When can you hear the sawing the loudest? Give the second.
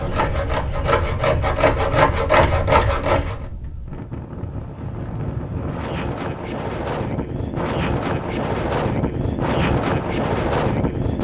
2 s.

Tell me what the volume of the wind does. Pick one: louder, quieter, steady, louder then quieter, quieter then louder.
louder.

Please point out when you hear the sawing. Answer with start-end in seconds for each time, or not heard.
0.0-3.4.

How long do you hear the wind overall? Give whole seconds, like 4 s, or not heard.
11 s.